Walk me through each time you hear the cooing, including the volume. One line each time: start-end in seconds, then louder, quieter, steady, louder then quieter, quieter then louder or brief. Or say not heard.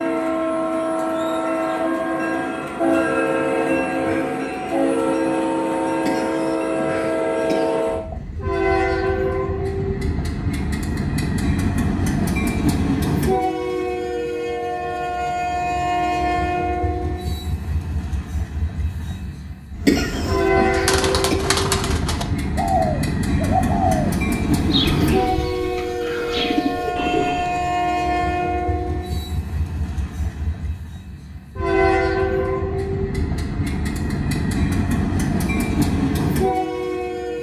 19.9-27.7 steady.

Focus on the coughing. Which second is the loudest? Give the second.
20 s.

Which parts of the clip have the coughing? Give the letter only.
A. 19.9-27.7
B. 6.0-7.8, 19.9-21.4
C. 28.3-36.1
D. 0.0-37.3
B.